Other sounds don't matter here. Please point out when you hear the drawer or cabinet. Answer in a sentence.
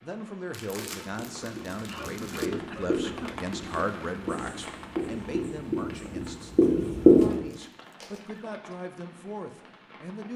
The drawer or cabinet can't be heard in this clip.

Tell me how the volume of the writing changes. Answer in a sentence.
The loudness of the writing goes up.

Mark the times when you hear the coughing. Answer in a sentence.
The coughing can be heard from 1.4 to 3.5 s and from 7.3 to 8.8 s.